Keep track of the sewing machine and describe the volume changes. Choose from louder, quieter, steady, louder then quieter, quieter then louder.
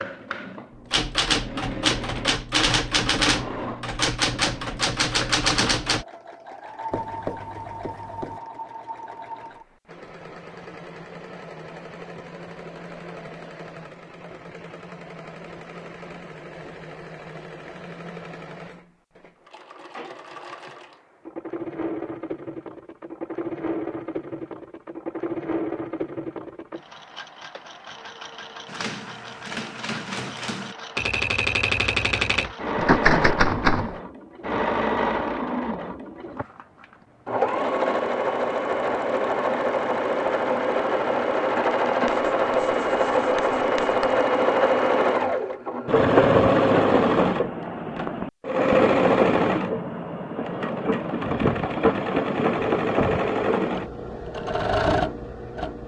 louder.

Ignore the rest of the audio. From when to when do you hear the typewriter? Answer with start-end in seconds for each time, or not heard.
0.9-6.0, 28.6-34.0.